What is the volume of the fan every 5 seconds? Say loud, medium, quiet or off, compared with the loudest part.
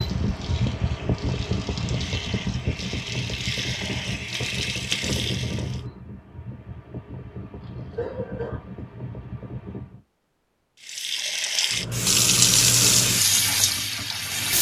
loud, medium, off.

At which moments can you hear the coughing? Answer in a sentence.
The coughing can be heard from 7.7 to 8.7 s.